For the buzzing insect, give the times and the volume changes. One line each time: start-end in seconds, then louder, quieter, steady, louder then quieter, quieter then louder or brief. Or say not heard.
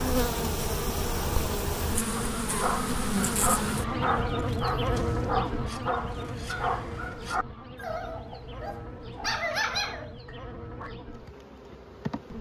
0.0-12.3 quieter.